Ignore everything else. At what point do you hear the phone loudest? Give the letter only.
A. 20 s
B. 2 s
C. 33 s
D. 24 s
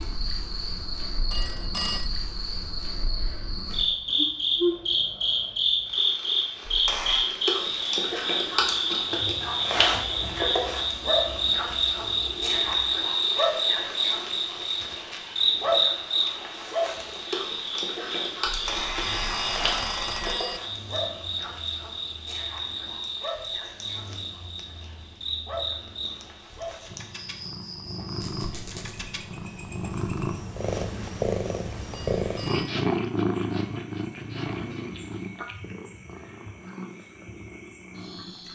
B.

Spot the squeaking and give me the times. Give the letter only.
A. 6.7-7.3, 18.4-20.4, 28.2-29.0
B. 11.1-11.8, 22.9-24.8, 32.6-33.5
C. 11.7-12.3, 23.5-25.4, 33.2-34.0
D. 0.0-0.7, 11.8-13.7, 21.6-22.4
A.